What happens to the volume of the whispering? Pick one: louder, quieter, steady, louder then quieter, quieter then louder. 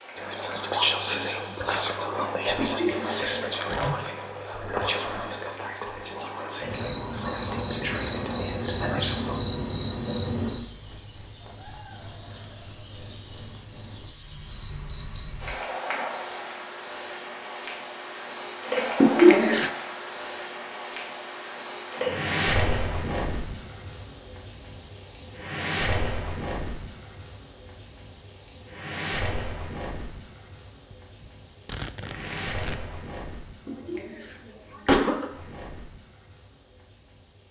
quieter.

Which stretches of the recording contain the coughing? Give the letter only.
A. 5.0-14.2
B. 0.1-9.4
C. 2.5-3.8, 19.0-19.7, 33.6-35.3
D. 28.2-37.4
C.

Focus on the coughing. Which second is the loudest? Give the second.
19 s.